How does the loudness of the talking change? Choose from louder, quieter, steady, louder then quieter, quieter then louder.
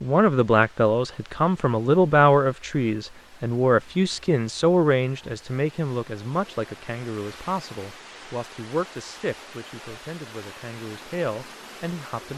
quieter.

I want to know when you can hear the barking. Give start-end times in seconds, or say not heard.
not heard.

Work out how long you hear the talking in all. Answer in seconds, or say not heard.
12 s.